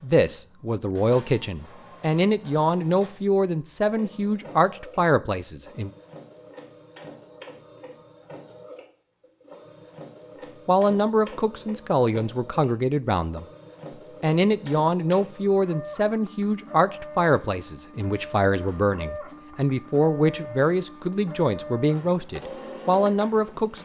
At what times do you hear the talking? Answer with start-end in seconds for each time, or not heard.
0.0-5.9, 10.7-13.4, 14.2-23.8.